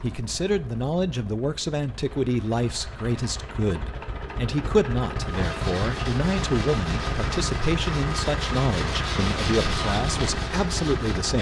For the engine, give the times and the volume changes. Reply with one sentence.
You can hear the engine from 0.0 to 11.3 s, getting louder.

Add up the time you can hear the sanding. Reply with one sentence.
The sanding can be heard for 6 seconds in total.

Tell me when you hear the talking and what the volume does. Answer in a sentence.
The talking can be heard from 0.0 to 11.3 s, at a steady volume.